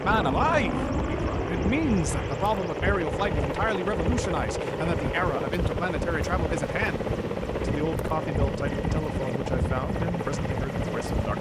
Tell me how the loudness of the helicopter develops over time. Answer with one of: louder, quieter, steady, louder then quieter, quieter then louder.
steady.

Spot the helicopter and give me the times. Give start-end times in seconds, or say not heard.
0.0-11.3.